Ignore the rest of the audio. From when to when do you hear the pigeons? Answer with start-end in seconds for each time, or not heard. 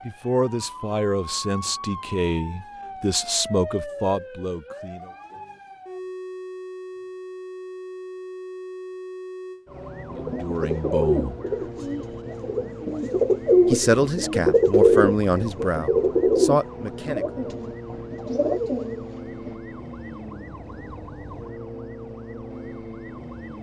10.1-19.6.